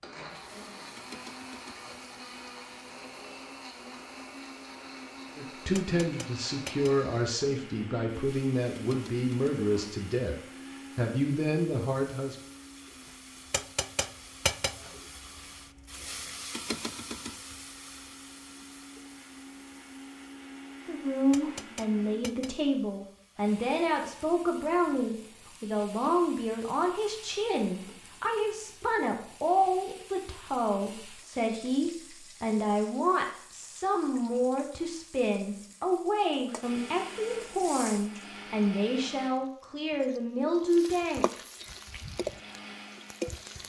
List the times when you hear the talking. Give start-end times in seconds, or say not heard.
5.3-10.3, 10.9-12.3, 20.9-41.2.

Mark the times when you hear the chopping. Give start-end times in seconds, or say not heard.
not heard.